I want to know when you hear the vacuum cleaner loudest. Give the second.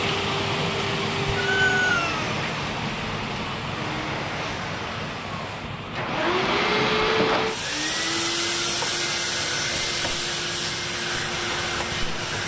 7 s.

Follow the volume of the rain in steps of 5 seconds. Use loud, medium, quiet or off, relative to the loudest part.
loud, medium, medium.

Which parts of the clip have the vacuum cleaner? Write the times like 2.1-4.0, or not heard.
0.0-12.4.